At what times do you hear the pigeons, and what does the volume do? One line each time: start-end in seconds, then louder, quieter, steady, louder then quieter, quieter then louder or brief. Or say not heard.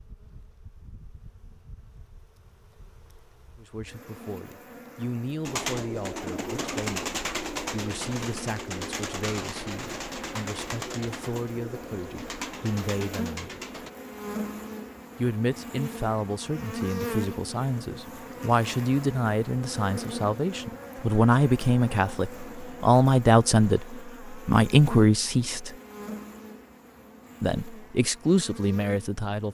5.5-13.9 quieter.